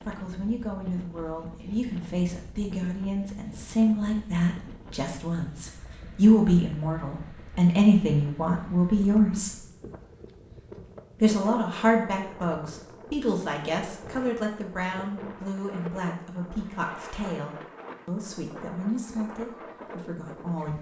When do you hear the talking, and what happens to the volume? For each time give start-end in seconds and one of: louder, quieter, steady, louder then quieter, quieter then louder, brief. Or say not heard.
0.0-9.6 louder
11.2-20.7 quieter.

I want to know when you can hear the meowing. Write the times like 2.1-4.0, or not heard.
not heard.